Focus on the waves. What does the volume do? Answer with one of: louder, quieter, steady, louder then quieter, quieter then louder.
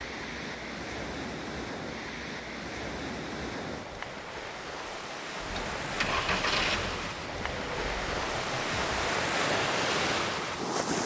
louder.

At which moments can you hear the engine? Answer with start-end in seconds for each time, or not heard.
5.4-9.1.